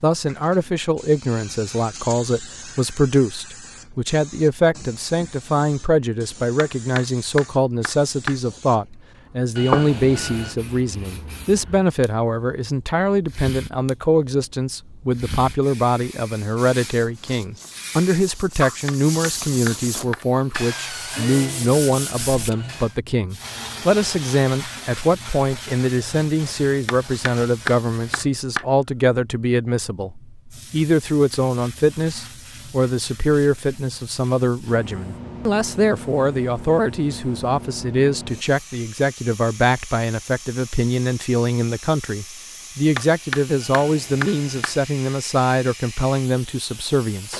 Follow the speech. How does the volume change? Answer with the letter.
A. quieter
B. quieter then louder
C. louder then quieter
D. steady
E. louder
D.